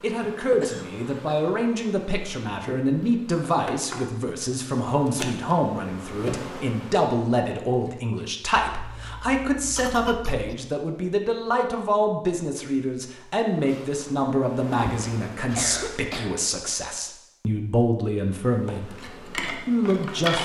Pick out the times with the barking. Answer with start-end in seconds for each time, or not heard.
not heard.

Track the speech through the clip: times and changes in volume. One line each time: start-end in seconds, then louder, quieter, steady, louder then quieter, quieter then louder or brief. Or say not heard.
0.0-20.4 steady.